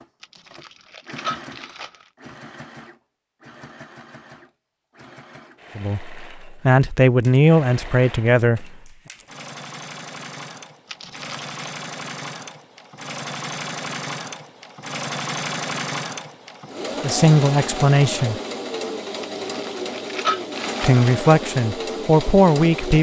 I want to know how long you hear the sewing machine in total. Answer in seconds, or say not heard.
23 s.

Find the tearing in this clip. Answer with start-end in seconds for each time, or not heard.
0.2-2.1, 10.8-11.6, 19.2-21.1.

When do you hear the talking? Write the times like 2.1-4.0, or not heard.
5.8-8.8, 17.0-18.4, 20.8-22.9.